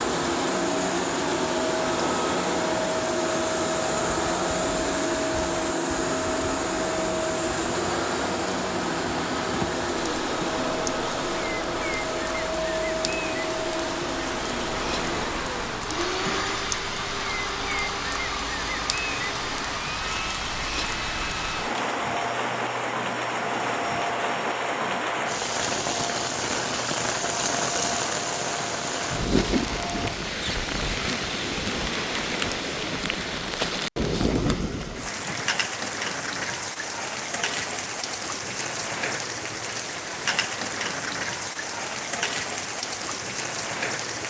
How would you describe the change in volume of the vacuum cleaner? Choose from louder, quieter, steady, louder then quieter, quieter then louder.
quieter.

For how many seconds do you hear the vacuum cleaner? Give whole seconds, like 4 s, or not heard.
30 s.